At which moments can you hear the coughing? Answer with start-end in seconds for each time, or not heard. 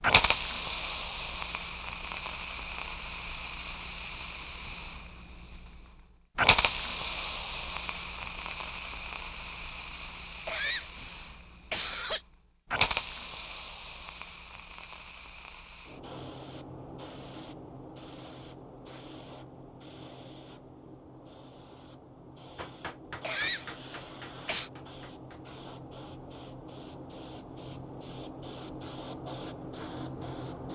10.4-12.2, 23.2-24.7.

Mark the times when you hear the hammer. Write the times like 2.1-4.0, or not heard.
22.6-25.4.